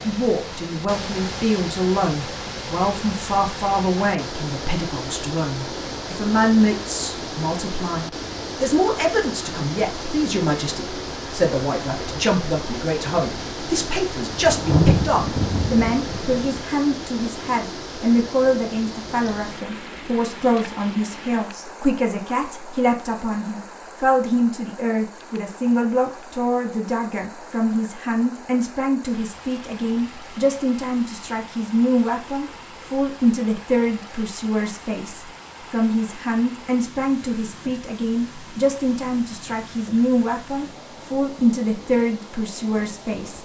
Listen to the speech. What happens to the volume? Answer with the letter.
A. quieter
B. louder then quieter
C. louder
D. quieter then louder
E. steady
E.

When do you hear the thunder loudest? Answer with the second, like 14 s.
15 s.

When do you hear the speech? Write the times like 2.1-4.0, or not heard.
0.0-43.3.